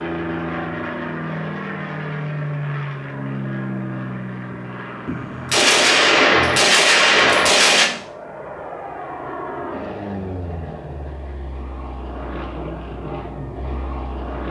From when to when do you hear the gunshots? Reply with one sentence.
You can hear the gunshots from 5.0 to 7.9 s.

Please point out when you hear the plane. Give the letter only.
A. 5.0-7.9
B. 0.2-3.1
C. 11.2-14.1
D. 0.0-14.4
D.